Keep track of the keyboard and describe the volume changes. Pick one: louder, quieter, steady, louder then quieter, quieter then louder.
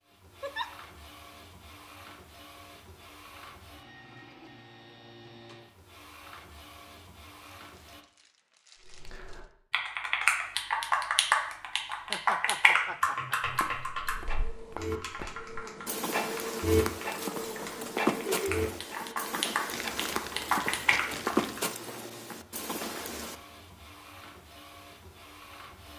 quieter then louder.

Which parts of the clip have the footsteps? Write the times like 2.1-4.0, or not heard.
13.4-23.4.